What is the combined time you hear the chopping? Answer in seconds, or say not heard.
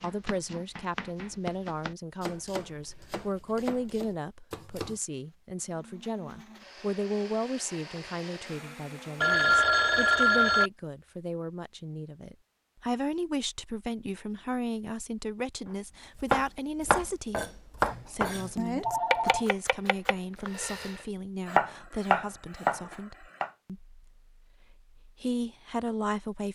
12 s.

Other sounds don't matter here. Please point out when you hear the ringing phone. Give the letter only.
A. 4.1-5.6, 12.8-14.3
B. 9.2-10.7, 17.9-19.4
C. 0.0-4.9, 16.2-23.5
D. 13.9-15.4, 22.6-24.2
B.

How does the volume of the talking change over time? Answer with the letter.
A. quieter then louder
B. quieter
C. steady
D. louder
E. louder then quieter
C.